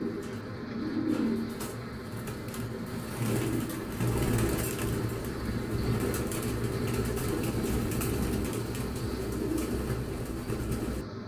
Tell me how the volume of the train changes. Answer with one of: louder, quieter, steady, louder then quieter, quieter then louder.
steady.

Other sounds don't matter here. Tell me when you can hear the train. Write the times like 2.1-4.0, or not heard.
0.0-11.2.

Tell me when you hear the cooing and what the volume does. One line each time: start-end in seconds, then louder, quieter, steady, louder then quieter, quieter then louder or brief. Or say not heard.
0.0-11.2 steady.